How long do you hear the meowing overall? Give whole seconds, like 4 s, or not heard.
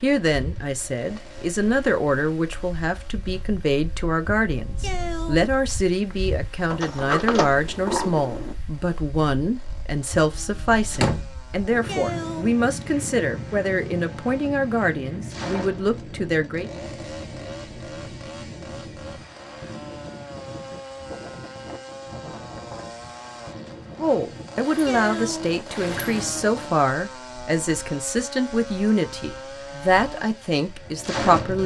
2 s.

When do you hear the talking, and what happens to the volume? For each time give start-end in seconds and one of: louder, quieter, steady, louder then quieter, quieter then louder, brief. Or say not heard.
0.0-16.7 steady
24.0-31.6 steady.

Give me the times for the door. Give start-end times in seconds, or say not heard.
6.7-8.6, 10.9-11.3, 24.6-26.4.